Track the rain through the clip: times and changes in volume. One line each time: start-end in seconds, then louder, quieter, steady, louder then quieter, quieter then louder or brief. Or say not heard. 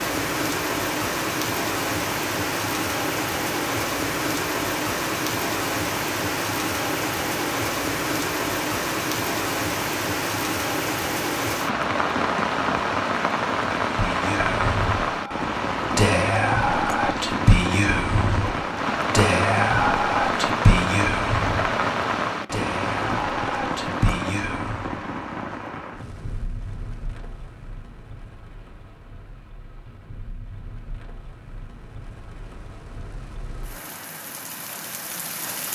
0.0-35.7 quieter.